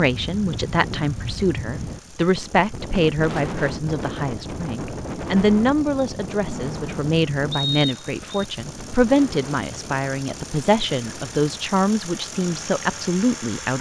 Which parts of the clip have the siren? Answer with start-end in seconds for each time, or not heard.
not heard.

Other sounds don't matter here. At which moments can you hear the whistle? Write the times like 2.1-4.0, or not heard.
7.5-8.4.